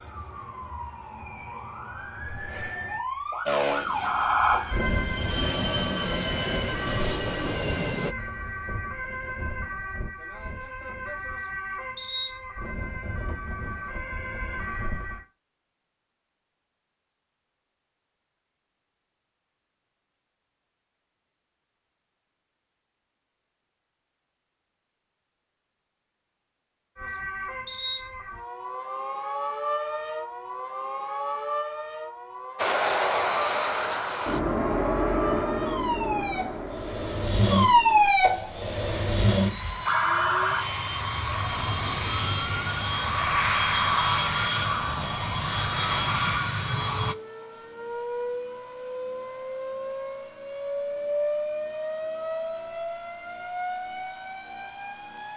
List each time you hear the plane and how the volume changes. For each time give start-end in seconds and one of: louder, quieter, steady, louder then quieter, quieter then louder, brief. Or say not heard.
3.5-8.2 louder
32.5-47.1 quieter then louder.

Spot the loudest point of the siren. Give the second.
38 s.